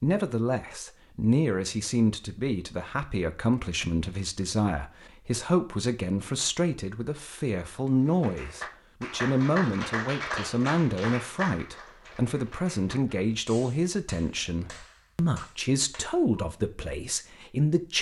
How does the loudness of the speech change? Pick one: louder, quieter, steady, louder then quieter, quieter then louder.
steady.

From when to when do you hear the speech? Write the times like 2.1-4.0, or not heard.
0.0-17.9.